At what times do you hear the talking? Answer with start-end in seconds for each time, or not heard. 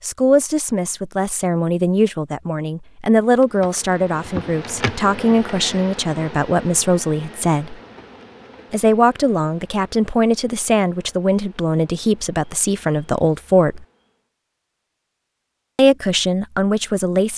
0.0-7.8, 8.7-13.8, 15.8-17.3.